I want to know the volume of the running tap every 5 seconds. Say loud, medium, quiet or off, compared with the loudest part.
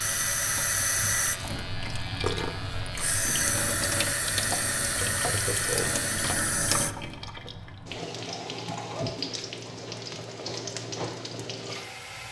loud, loud, medium.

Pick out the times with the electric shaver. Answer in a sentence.
The electric shaver can be heard from 0.0 to 6.3 s.